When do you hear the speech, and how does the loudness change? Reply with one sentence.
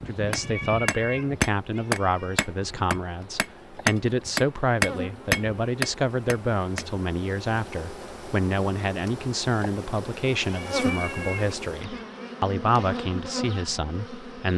You can hear the speech from 0.1 to 14.5 s, at a steady volume.